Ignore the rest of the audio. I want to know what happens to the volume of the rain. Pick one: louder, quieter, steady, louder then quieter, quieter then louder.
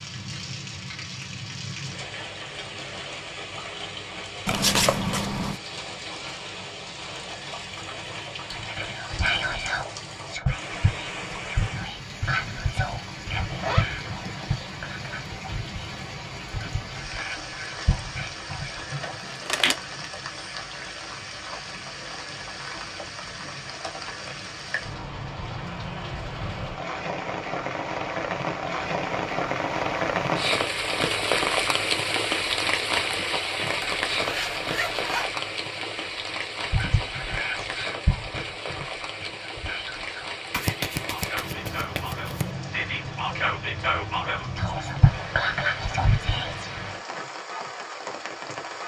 louder then quieter.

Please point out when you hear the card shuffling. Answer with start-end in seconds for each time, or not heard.
4.5-5.6, 19.0-19.8, 40.5-42.5.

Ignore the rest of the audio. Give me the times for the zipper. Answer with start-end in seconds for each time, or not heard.
13.4-14.6, 33.8-35.3.